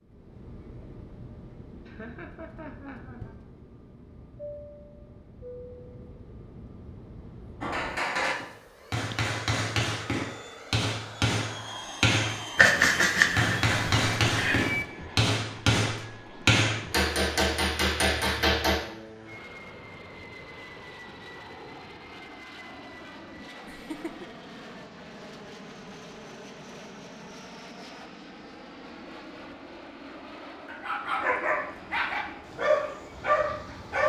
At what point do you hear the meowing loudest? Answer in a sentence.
The loudest moment of the meowing is at 13 seconds.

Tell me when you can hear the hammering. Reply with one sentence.
You can hear the hammering from 7.6 to 18.8 s.